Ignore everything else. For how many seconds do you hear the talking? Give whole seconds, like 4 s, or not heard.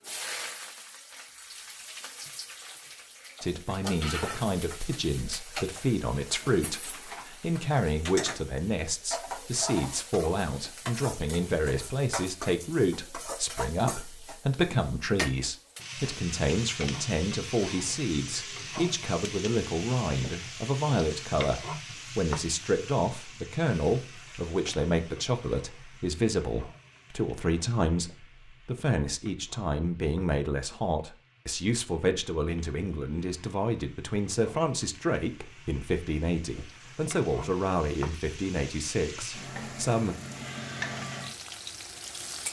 37 s.